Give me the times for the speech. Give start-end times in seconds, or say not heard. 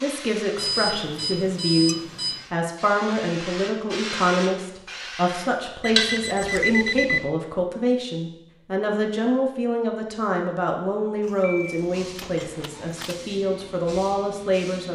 0.0-14.9.